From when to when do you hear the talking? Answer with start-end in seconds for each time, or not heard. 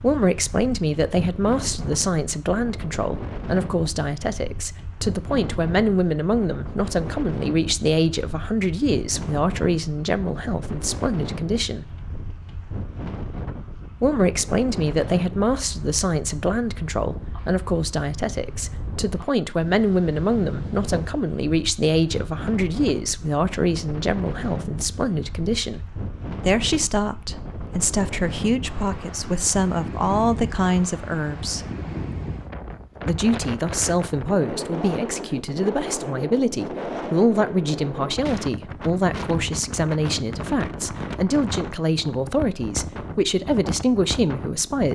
0.0-11.9, 14.0-31.6, 33.0-44.9.